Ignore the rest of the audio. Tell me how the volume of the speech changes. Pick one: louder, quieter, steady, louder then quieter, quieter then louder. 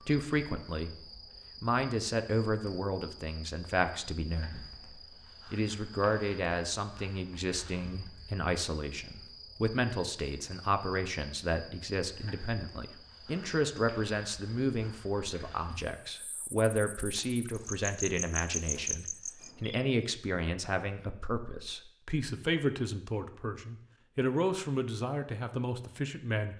steady.